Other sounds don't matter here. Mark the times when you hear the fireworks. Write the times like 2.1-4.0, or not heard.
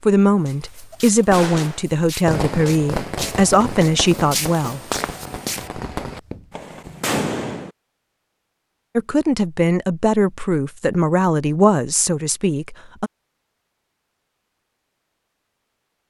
1.3-7.7.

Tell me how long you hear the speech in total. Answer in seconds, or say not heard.
9 s.